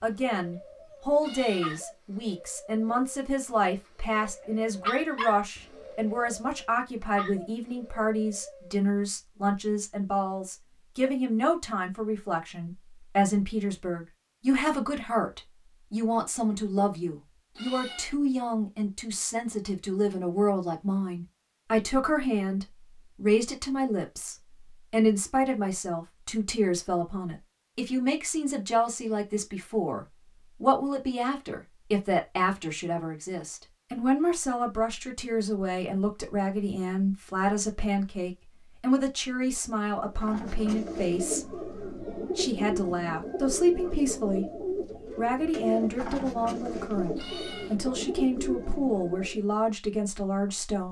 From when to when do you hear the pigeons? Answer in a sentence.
The pigeons can be heard from 0.0 to 8.8 s and from 40.0 to 49.5 s.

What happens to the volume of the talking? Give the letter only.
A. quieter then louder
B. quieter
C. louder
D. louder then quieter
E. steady
E.